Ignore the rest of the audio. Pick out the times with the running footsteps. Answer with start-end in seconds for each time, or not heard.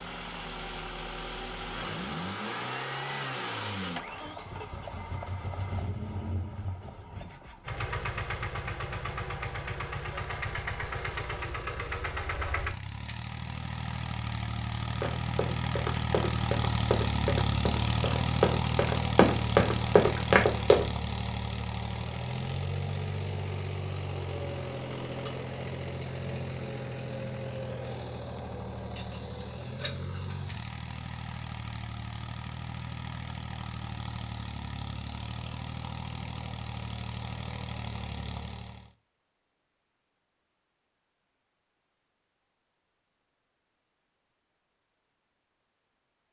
14.9-20.9.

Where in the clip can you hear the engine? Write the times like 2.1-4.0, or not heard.
0.0-38.9.